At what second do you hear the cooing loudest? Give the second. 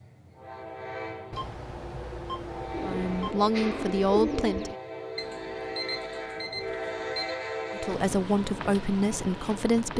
4 s.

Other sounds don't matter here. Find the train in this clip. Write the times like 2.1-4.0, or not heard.
0.0-9.9.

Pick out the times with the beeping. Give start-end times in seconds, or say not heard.
1.3-3.4, 5.2-7.3.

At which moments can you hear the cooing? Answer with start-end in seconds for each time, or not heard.
2.7-4.8.